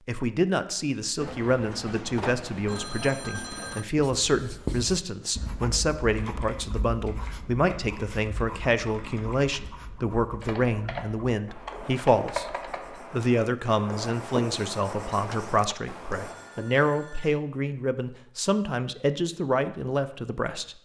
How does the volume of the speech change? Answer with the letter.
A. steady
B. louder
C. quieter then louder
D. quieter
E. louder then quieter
A.